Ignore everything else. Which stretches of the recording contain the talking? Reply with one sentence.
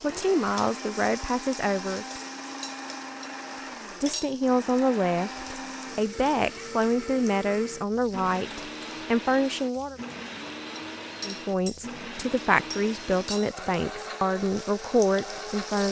The talking can be heard from 0.0 to 2.0 s, from 4.0 to 10.0 s and from 11.2 to 15.8 s.